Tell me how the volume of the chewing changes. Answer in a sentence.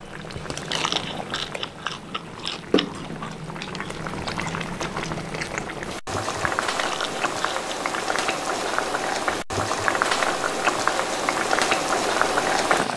The volume of the chewing goes down.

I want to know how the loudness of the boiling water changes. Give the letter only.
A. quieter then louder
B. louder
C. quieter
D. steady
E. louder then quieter
B.